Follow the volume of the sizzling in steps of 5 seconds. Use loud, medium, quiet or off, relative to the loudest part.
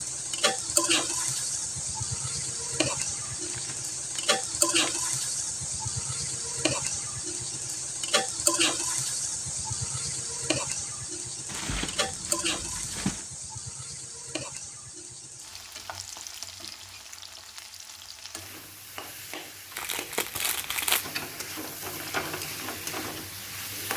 loud, loud, medium, quiet, medium.